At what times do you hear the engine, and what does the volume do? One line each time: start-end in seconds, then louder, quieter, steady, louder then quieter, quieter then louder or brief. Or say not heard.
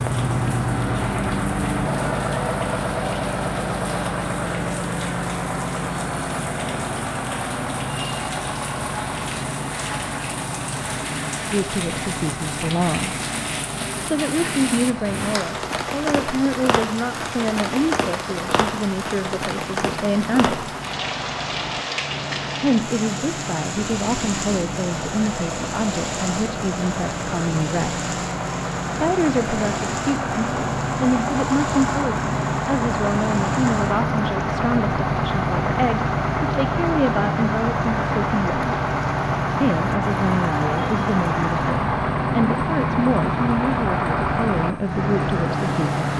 0.0-46.1 quieter then louder.